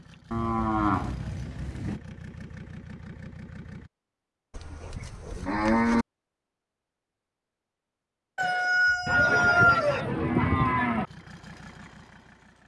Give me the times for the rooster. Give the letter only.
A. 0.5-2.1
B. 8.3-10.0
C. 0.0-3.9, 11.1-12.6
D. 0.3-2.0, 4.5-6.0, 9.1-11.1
B.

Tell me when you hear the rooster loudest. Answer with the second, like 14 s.
10 s.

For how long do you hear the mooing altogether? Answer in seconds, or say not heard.
5 s.